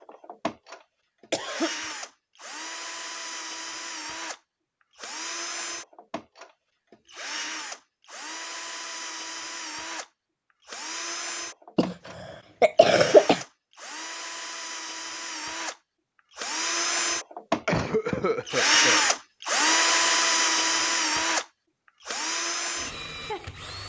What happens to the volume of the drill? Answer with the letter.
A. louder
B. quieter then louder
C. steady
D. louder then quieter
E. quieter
A.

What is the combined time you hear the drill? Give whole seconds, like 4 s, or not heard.
24 s.